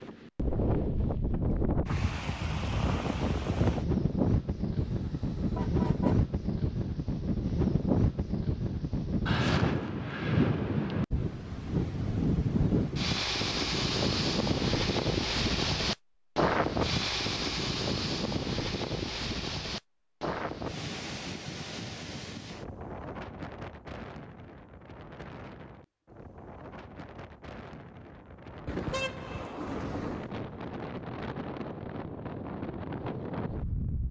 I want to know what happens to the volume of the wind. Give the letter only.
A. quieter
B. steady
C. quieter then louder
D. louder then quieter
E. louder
A.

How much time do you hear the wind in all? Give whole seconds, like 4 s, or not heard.
34 s.